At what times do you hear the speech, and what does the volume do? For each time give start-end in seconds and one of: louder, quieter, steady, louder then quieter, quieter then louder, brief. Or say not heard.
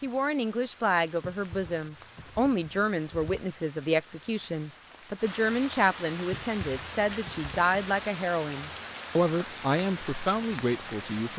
0.0-11.3 steady.